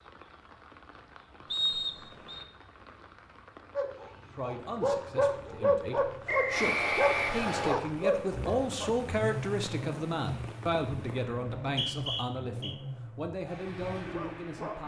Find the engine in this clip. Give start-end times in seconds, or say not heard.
6.5-14.8.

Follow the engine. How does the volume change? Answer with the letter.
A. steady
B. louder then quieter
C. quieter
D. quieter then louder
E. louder
C.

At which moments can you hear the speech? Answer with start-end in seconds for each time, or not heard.
4.3-14.8.